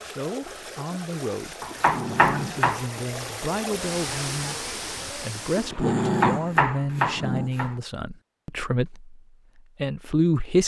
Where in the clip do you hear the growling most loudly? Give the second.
6 s.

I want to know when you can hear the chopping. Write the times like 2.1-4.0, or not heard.
1.6-2.9, 6.0-7.8.